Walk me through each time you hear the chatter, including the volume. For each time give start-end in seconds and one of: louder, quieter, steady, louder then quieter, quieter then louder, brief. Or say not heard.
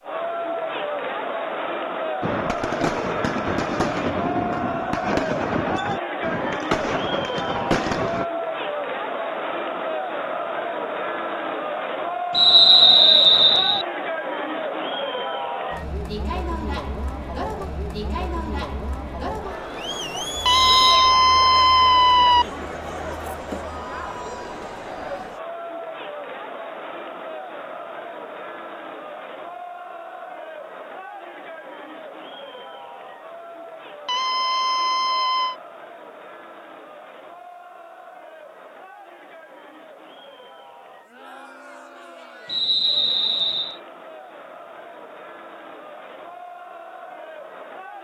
0.0-47.9 quieter.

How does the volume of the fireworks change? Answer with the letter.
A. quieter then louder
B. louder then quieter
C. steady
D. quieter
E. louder
C.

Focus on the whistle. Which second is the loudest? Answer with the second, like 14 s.
13 s.